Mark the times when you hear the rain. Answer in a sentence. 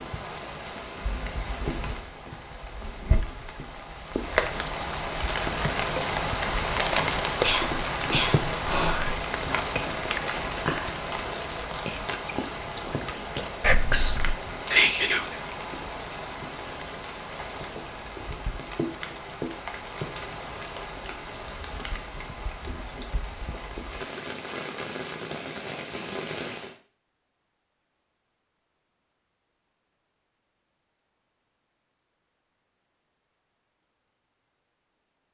You can hear the rain from 0.0 to 26.8 s.